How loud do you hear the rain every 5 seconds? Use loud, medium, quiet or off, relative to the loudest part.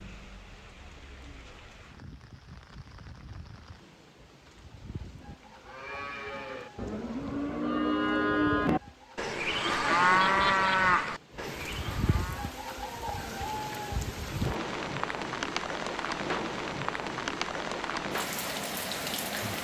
quiet, quiet, loud, loud.